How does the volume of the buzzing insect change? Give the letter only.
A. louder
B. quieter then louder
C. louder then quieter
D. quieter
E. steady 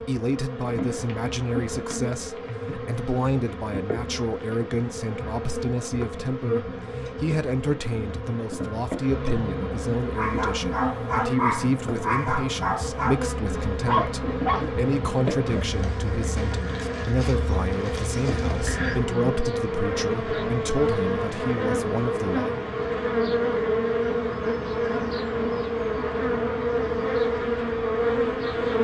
A.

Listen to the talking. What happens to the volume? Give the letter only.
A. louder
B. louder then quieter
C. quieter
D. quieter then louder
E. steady
E.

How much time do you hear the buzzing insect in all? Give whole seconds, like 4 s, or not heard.
29 s.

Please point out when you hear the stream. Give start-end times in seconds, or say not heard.
not heard.